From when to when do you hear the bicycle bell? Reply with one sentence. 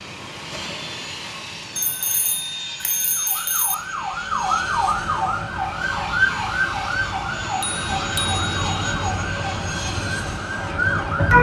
The bicycle bell can be heard from 1.8 to 3.8 s and from 7.6 to 8.9 s.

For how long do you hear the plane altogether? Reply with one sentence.
You can hear the plane for 11 seconds altogether.